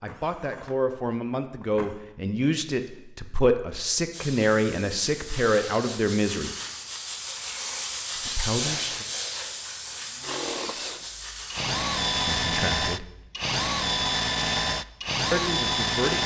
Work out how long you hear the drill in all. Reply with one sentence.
You can hear the drill for 8 seconds altogether.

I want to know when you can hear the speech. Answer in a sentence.
You can hear the speech from 0.0 to 6.5 s, from 8.2 to 9.1 s, from 12.2 to 13.1 s and from 15.3 to 16.2 s.